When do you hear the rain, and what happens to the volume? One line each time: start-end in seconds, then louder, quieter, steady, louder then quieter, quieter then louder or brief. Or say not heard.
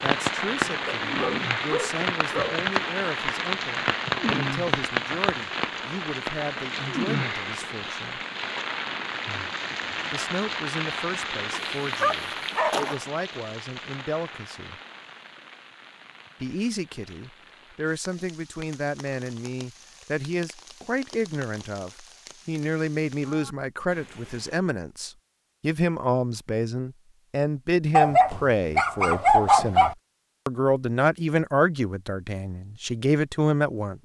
0.0-24.6 quieter.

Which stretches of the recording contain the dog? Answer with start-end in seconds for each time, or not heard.
0.8-2.6, 11.5-13.1, 27.9-29.9.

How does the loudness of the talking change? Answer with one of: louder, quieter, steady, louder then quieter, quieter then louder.
louder.